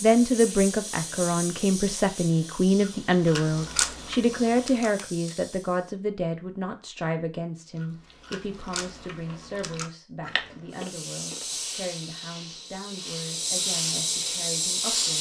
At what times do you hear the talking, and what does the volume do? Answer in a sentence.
The talking can be heard from 0.0 to 15.1 s, getting quieter.